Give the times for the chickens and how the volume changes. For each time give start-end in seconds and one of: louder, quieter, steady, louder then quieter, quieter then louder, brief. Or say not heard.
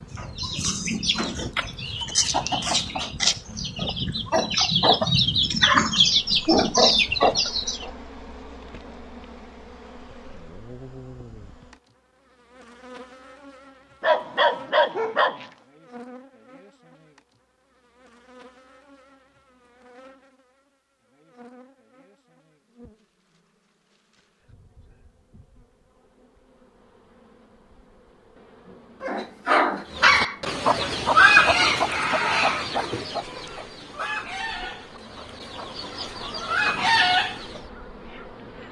0.1-7.9 louder
29.9-37.6 quieter then louder.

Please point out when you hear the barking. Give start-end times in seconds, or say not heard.
14.0-15.5, 29.0-30.4.